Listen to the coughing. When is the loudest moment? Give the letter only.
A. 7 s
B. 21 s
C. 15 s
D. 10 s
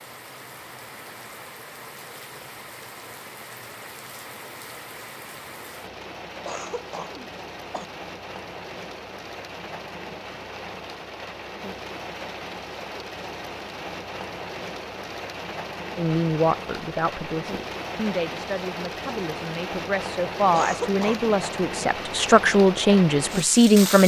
B.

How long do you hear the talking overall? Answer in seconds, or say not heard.
8 s.